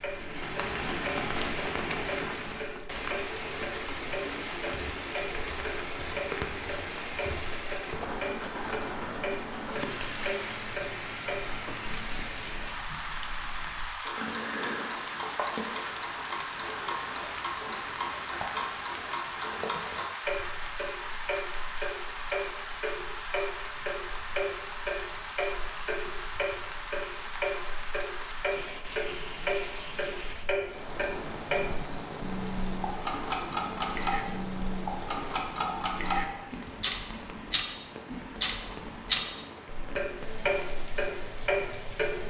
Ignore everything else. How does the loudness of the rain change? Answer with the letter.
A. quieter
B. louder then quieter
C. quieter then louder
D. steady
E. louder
A.